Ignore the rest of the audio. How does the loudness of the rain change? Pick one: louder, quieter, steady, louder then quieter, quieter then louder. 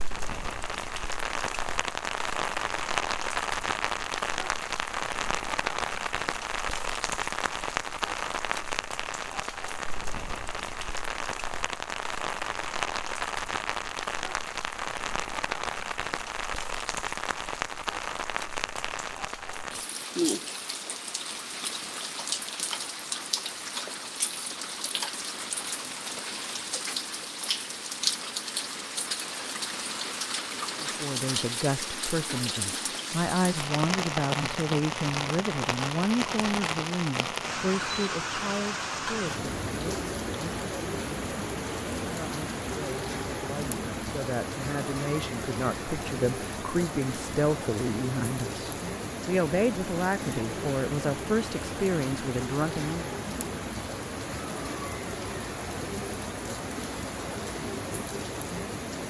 steady.